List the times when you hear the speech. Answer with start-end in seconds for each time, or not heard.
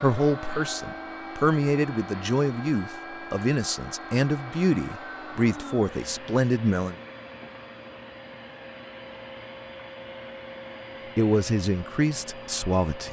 0.0-7.0, 11.2-13.0.